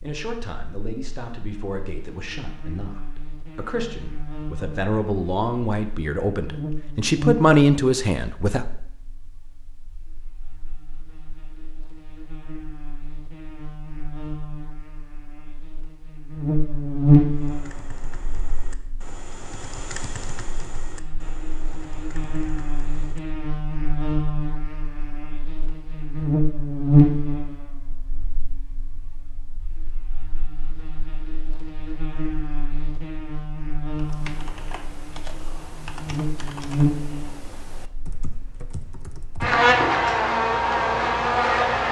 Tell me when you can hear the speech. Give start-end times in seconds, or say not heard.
0.0-8.7.